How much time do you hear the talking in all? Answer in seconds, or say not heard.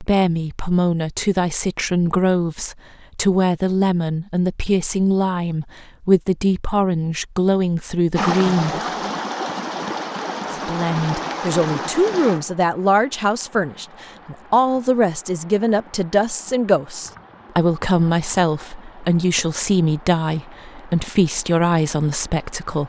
21 s.